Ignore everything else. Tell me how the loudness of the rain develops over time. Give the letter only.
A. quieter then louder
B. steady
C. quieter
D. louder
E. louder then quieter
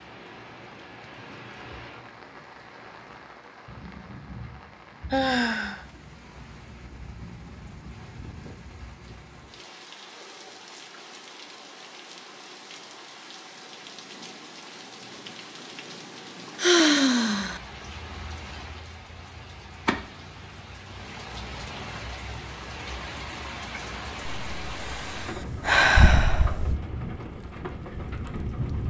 D.